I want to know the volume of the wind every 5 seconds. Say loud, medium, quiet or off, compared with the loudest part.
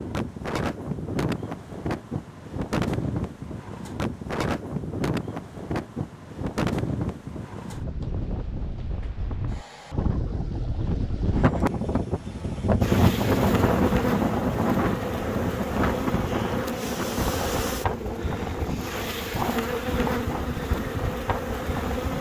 medium, medium, loud, medium, medium.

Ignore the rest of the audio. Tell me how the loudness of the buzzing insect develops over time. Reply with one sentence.
The loudness of the buzzing insect stays about the same.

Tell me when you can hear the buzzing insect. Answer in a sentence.
The buzzing insect can be heard from 12.8 to 22.1 s.